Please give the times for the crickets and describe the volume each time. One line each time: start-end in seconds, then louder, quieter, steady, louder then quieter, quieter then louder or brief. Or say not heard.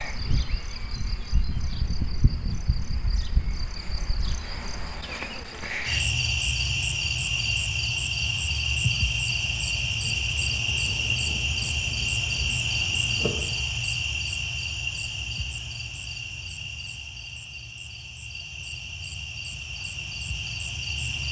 0.0-21.2 louder then quieter.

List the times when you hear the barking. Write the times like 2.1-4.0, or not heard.
not heard.